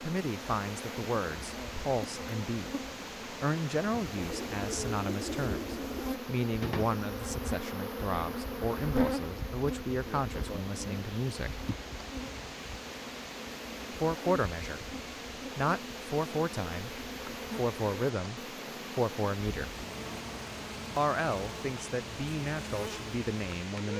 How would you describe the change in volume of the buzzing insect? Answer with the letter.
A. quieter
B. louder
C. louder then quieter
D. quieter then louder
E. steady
C.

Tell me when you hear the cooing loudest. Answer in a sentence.
The loudest moment of the cooing is at 5 seconds.